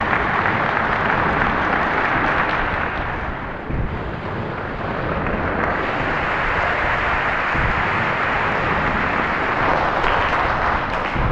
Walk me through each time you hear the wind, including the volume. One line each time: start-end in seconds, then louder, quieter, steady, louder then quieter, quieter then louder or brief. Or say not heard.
0.0-11.2 steady.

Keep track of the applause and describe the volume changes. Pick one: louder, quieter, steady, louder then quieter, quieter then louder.
quieter then louder.